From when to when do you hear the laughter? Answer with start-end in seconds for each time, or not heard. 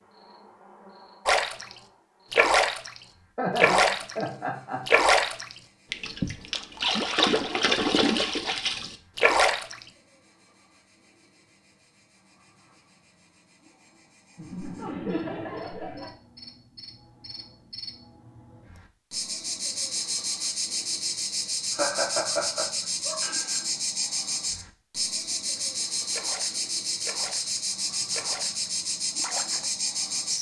3.4-4.9, 14.3-16.1, 21.7-23.6.